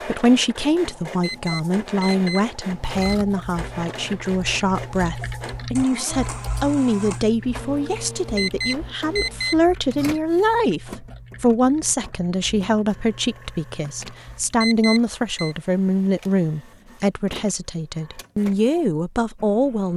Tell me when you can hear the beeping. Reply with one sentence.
You can hear the beeping from 1.2 to 3.2 s, from 8.3 to 10.2 s and from 14.6 to 15.6 s.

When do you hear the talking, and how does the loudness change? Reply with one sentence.
You can hear the talking from 0.1 to 19.9 s, at a steady volume.